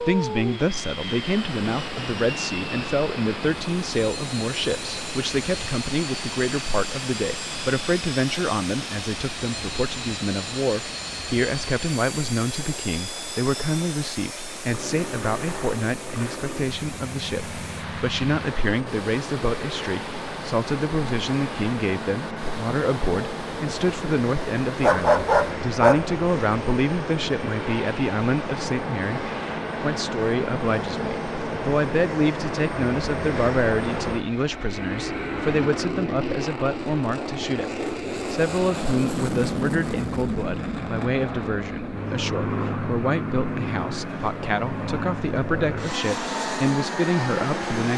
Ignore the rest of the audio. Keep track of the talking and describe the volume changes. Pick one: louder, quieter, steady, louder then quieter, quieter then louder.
steady.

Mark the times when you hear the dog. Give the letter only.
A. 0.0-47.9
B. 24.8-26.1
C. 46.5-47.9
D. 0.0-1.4
B.